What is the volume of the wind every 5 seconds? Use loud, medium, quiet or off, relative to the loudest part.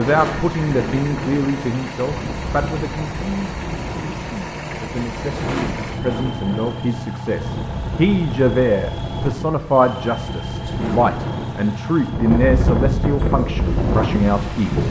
medium, medium, loud.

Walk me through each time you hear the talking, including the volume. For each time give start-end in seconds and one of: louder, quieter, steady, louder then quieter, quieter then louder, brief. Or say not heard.
0.0-14.8 quieter then louder.